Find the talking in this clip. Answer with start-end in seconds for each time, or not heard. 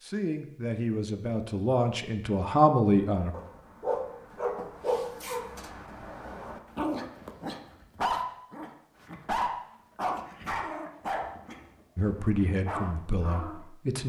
0.0-3.4, 11.9-14.0.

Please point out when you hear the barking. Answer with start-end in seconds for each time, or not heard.
3.1-13.7.